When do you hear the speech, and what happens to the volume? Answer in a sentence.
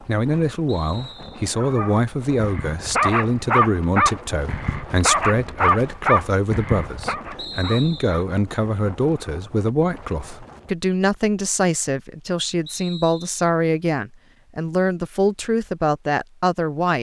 The speech can be heard from 0.0 to 16.9 s, at a steady volume.